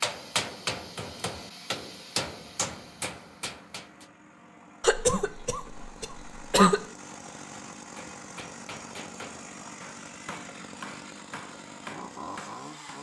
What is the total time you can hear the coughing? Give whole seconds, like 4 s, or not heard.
2 s.